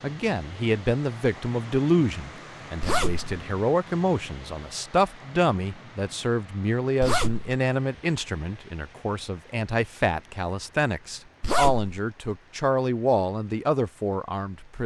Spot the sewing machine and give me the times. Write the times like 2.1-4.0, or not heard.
not heard.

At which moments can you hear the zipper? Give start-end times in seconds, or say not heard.
2.8-3.3, 7.0-7.5, 11.4-11.9.